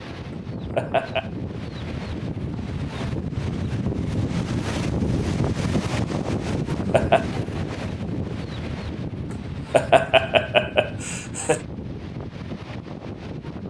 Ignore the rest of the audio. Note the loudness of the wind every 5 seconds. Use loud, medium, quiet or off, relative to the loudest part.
loud, loud, medium.